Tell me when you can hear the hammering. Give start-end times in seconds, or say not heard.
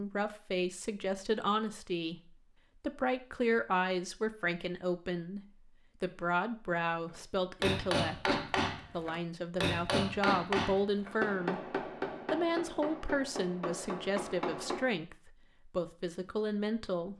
7.6-14.9.